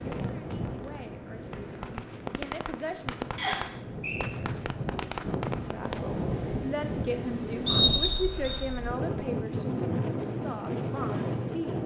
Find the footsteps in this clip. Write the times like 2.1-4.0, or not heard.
not heard.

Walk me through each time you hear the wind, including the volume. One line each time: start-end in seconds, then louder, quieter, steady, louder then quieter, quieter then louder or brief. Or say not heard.
0.0-11.8 louder.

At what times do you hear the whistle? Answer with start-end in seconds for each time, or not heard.
3.4-4.3, 7.7-8.6.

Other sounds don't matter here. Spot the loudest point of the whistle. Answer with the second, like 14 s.
8 s.